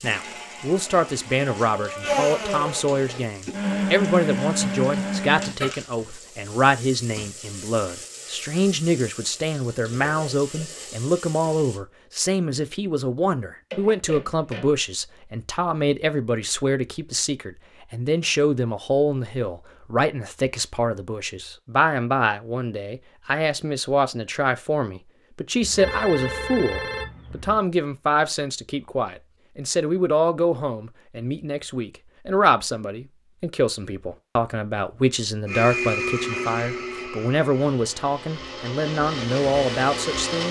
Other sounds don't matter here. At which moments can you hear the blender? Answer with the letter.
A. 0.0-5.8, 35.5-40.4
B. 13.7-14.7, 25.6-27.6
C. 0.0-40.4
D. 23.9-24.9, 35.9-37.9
A.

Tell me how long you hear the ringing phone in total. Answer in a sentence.
The ringing phone can be heard for 3 seconds in total.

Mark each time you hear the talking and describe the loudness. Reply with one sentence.
You can hear the talking from 0.0 to 40.4 s, at a steady volume.